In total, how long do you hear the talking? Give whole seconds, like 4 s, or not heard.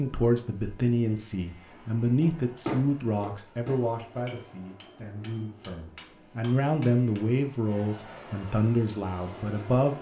10 s.